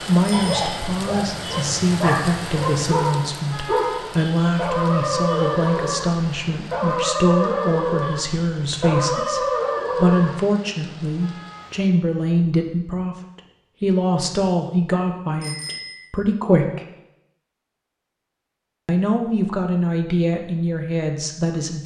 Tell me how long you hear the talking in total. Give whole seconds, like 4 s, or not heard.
20 s.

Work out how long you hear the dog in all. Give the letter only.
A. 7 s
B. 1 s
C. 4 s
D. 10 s
D.